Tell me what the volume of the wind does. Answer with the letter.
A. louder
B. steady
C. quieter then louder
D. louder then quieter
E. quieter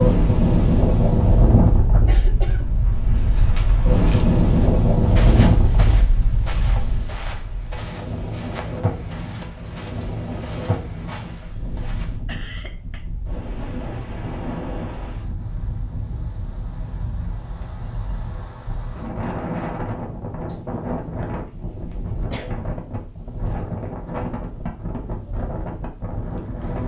E.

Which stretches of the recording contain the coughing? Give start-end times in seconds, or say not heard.
1.5-2.8, 12.2-13.1, 20.4-22.5.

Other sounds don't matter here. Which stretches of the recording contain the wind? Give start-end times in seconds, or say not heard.
0.0-26.8.